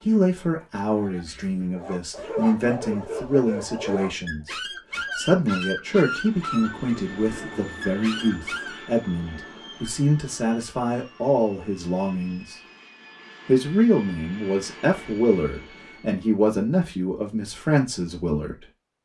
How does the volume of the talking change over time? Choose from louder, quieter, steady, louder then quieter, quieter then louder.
steady.